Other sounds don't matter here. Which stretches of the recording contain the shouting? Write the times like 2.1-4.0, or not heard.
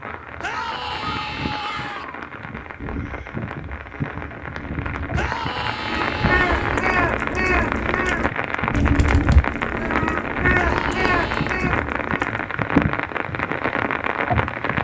0.4-2.0, 5.1-6.8, 10.6-11.6.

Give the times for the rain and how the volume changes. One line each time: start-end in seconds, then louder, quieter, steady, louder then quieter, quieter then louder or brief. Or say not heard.
0.0-14.7 louder.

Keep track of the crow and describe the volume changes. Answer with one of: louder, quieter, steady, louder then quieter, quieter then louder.
louder.